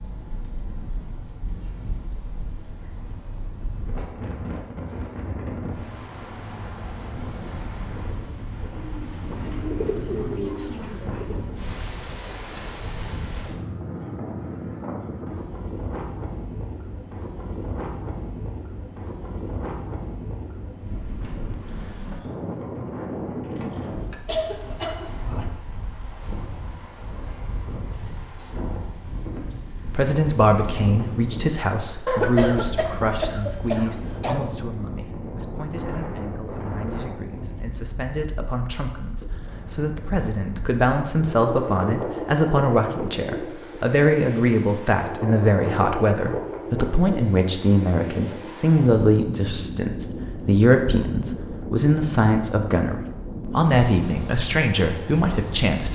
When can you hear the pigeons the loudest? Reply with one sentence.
The volume of the pigeons peaks at 10 seconds.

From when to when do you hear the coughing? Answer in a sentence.
The coughing can be heard from 23.6 to 25.4 s and from 32.0 to 34.4 s.